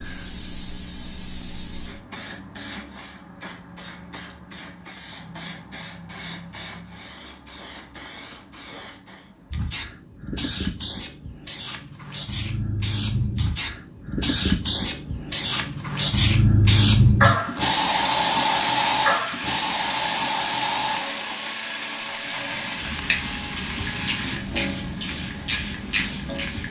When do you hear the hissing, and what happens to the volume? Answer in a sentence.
You can hear the hissing from 0.0 to 26.6 s, getting louder then quieter.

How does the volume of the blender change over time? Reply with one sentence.
The loudness of the blender goes down.